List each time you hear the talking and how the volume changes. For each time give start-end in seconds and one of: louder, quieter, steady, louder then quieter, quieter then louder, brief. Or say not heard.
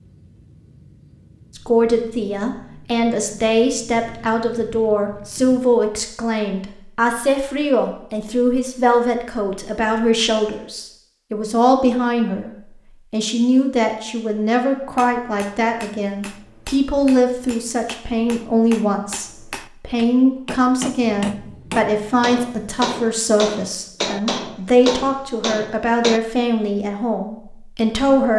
1.6-12.5 steady
13.1-28.3 steady.